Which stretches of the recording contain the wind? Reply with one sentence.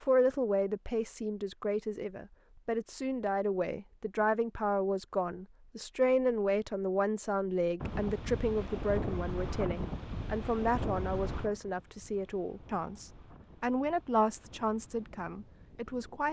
The wind can be heard from 7.8 to 16.2 s.